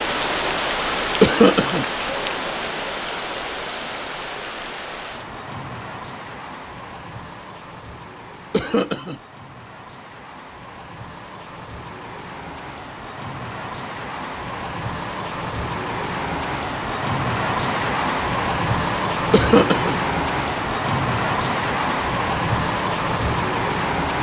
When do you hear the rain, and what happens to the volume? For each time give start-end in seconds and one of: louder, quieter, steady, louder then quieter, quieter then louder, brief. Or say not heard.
0.0-24.1 quieter then louder.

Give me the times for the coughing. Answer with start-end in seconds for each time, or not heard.
1.2-1.9, 8.5-9.2, 19.3-19.9.